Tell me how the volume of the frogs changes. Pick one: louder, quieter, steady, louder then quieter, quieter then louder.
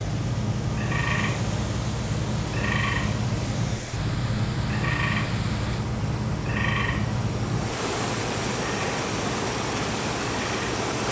quieter.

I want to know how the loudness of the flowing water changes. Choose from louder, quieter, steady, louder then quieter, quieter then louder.
louder.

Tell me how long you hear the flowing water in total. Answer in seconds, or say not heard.
11 s.